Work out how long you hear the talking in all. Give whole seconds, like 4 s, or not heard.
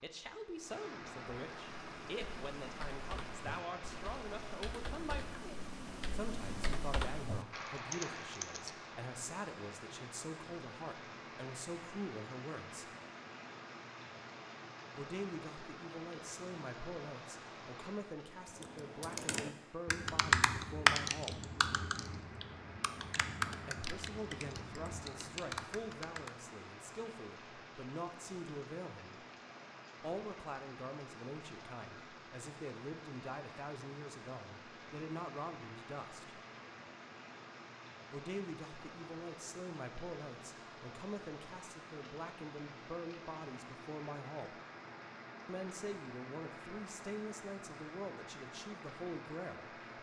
42 s.